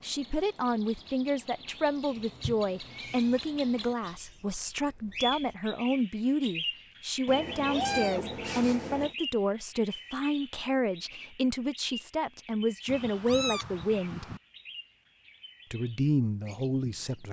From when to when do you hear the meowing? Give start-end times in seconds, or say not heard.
2.1-3.5, 7.2-9.2, 12.8-14.4.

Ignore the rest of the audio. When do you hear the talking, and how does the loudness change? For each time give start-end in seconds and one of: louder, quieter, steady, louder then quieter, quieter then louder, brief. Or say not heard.
0.0-14.3 steady
15.7-17.2 brief.